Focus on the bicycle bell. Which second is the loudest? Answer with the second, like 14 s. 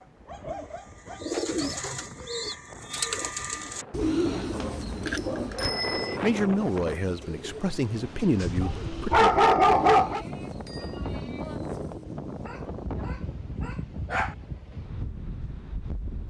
6 s.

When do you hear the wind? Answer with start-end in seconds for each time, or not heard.
0.0-16.2.